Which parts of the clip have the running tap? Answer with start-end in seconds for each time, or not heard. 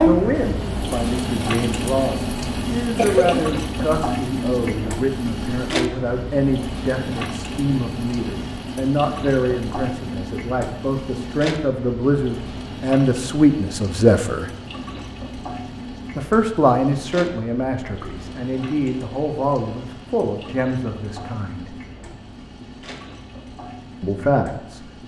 0.0-25.0.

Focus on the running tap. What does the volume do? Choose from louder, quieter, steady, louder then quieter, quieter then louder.
quieter.